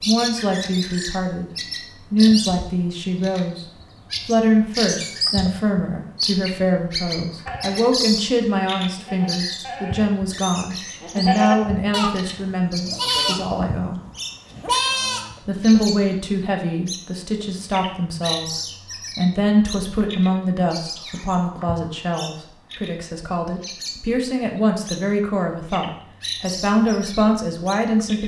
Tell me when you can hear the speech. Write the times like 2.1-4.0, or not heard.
0.0-1.4, 2.1-14.0, 15.4-28.2.